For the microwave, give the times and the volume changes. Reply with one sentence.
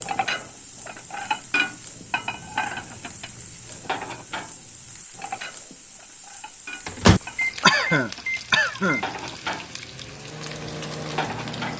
You can hear the microwave from 6.8 to 11.7 s, getting quieter then louder.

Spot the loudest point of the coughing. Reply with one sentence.
The loudest moment of the coughing is at 8 seconds.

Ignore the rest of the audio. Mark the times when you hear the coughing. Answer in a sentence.
The coughing can be heard from 7.2 to 9.1 s.